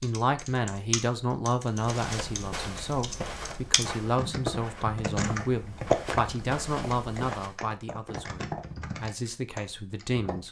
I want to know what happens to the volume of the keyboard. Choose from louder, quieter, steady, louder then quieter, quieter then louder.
louder then quieter.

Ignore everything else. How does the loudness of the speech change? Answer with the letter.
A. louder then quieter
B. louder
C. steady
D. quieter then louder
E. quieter
E.